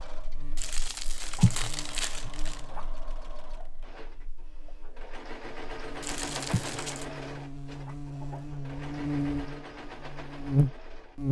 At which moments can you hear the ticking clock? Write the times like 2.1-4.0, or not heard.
not heard.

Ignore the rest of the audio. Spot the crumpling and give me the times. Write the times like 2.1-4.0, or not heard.
0.6-2.6, 6.0-7.0.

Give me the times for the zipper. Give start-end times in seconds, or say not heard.
not heard.